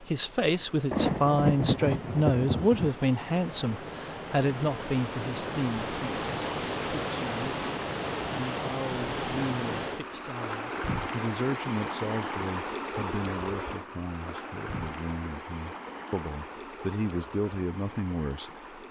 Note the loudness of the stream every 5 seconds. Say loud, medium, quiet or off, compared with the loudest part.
medium, loud, loud, medium.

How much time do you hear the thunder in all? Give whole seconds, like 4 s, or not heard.
2 s.